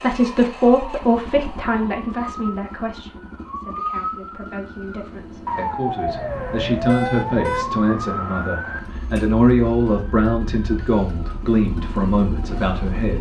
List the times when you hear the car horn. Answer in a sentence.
You can hear the car horn from 6.0 to 7.8 s.